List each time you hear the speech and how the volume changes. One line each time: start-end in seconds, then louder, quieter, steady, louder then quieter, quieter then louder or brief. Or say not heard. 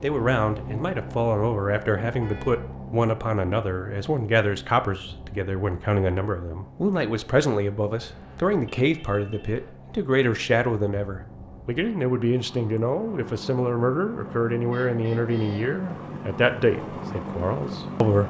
0.0-18.2 steady.